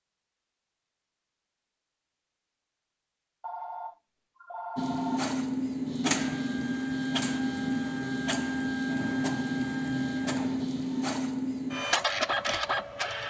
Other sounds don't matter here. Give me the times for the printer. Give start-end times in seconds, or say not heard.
4.8-13.2.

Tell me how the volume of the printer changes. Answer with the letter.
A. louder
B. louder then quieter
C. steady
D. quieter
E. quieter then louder
C.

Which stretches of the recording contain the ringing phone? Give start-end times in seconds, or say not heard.
3.4-5.3.